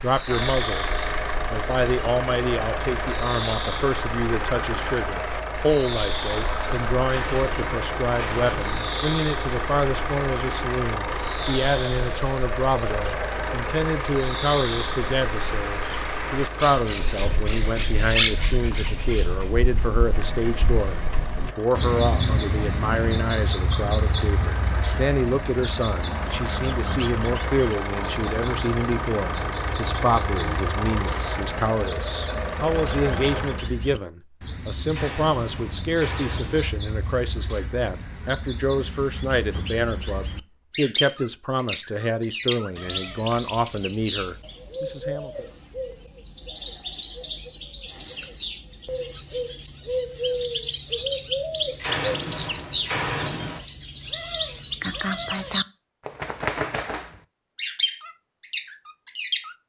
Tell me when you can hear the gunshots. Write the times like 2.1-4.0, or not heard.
7.0-8.9, 34.9-36.8, 51.8-53.6.